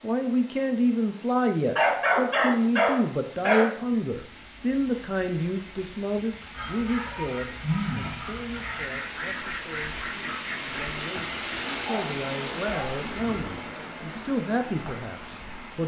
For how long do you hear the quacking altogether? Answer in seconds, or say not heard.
3 s.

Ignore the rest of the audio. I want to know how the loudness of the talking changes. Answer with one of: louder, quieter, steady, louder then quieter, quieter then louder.
quieter then louder.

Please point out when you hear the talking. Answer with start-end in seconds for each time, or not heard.
0.0-15.8.